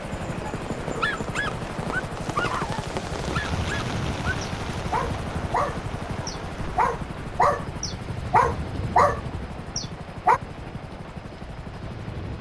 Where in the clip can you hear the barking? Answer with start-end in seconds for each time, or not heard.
0.5-10.4.